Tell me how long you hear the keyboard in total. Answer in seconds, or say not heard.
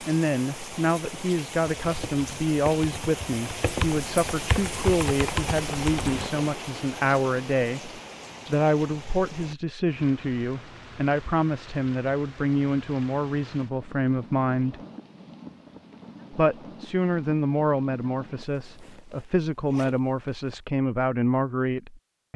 5 s.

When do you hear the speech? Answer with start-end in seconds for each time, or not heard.
0.0-14.8, 16.3-22.3.